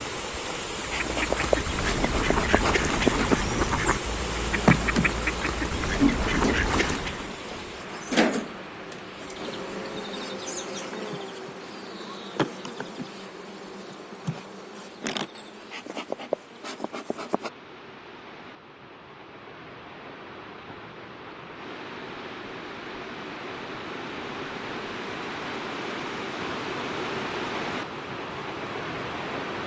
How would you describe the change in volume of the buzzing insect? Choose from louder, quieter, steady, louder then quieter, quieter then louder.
quieter.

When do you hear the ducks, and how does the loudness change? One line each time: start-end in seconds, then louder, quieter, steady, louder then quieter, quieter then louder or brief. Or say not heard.
0.9-7.3 steady.